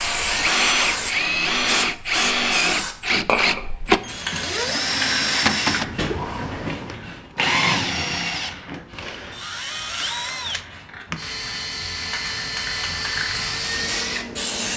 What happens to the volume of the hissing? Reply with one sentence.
The volume of the hissing goes down, then up.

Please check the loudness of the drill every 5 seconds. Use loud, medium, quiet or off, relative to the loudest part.
loud, loud, medium.